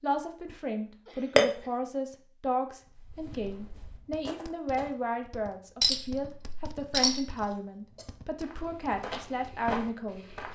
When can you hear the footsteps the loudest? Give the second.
10 s.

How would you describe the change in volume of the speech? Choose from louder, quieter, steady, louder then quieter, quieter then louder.
steady.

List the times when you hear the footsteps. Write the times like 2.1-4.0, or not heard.
2.9-4.9, 8.4-10.5.